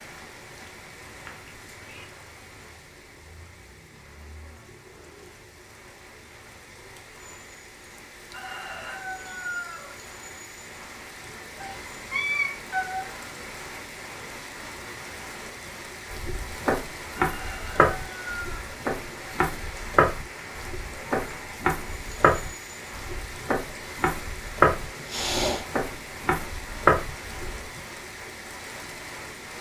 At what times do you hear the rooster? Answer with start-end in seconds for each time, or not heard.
8.3-9.9, 17.1-18.8.